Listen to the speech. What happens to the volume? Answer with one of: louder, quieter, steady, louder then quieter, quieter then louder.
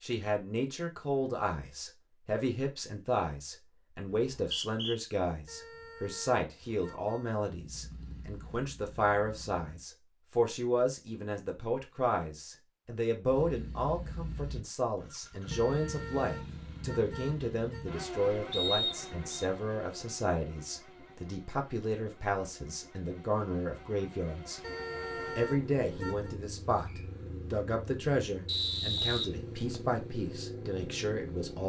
steady.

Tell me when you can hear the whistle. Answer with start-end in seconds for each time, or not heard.
4.2-5.0, 18.5-19.4, 28.4-29.8.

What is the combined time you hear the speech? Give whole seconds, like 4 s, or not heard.
31 s.